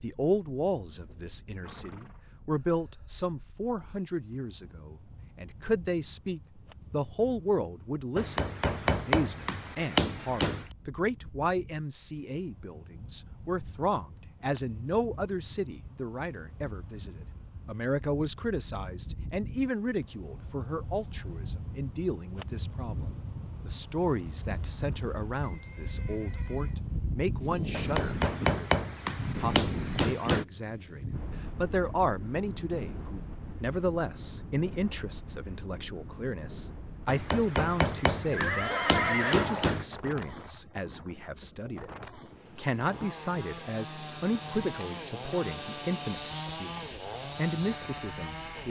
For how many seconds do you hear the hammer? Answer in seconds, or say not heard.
8 s.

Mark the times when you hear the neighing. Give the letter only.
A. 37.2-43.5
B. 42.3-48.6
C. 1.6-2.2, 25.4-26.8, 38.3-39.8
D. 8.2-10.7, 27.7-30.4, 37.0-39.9
C.